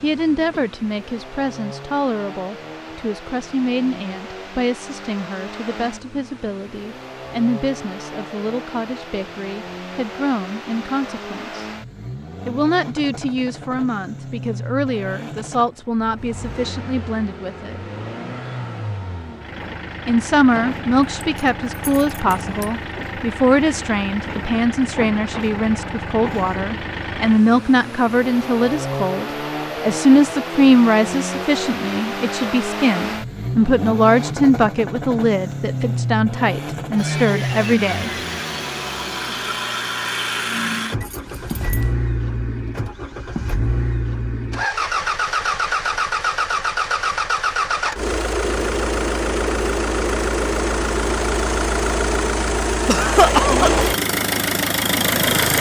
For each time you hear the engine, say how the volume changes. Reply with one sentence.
You can hear the engine from 0.0 to 55.5 s, getting louder.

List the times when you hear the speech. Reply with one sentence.
You can hear the speech from 0.0 to 11.7 s, from 12.4 to 17.8 s and from 20.1 to 38.1 s.